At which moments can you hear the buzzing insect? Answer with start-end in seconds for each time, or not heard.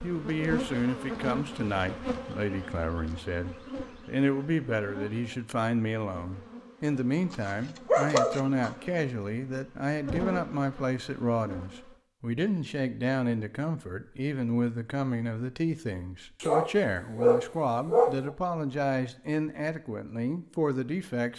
0.0-11.8.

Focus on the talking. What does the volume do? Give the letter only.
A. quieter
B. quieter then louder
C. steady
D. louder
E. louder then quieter
C.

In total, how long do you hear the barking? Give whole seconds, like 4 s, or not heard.
3 s.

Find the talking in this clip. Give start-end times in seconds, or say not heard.
0.0-21.3.